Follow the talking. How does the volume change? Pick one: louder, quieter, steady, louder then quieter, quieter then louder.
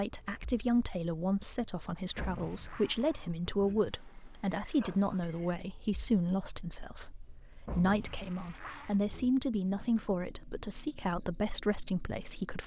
steady.